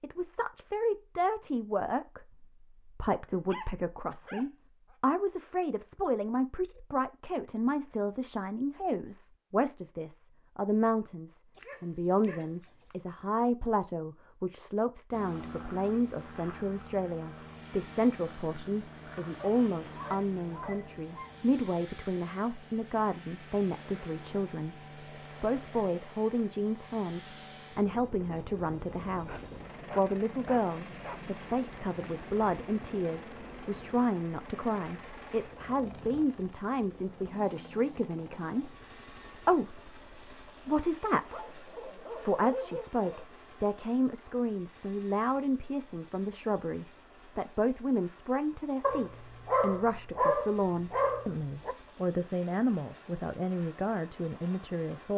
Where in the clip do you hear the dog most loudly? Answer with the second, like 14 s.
50 s.